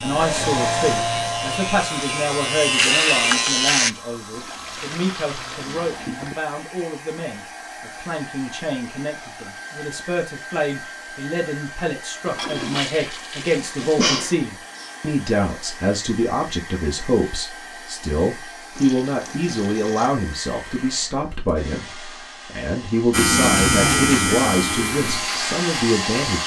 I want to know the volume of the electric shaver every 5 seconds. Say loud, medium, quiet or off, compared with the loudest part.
loud, off, off, off, loud, medium.